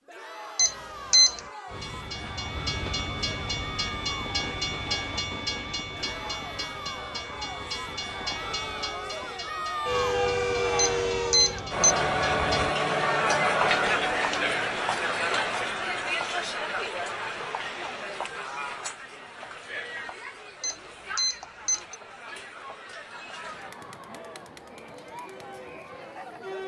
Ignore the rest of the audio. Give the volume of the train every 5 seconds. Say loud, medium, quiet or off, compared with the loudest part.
loud, medium, loud, off, off, off.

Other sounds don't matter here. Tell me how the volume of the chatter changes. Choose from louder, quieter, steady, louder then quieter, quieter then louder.
louder then quieter.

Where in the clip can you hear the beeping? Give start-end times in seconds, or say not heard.
0.6-1.4, 10.8-11.9, 20.6-21.9.